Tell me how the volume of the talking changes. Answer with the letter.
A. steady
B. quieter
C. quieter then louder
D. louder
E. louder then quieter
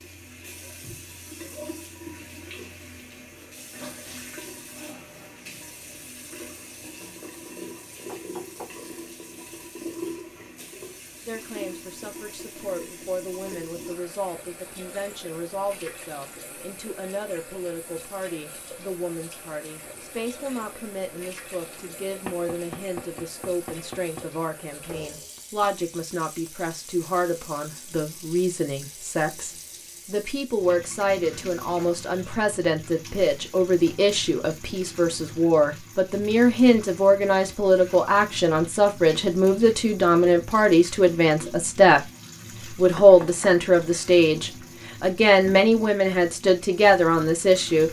D.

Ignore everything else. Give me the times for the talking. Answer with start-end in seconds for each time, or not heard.
11.2-42.0, 42.7-47.8.